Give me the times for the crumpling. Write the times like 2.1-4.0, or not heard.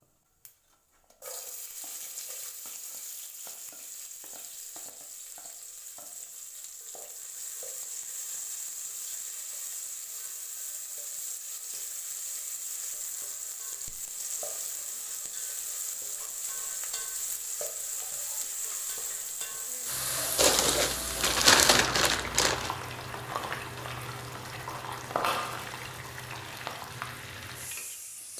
20.4-22.7.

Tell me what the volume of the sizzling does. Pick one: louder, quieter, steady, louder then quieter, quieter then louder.
louder.